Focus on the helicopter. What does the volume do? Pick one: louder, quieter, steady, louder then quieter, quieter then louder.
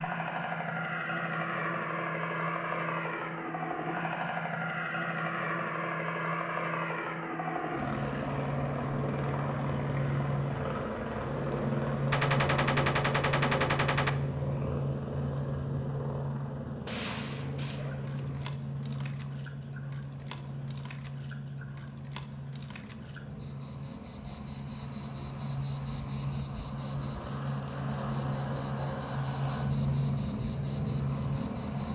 quieter then louder.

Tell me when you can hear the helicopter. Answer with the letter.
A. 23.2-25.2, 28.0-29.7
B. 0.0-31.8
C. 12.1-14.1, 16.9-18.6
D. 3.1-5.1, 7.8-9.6
B.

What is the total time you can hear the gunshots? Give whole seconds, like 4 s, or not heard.
4 s.